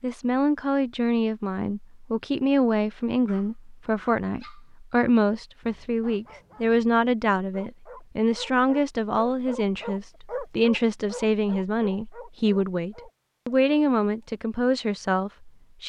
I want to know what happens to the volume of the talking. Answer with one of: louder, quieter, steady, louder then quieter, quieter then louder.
steady.